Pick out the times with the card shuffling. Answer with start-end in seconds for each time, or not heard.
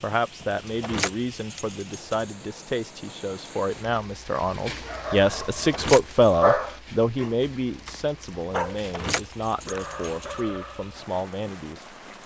not heard.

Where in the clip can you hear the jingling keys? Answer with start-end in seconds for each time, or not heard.
0.4-2.3, 5.3-6.3, 8.7-10.4.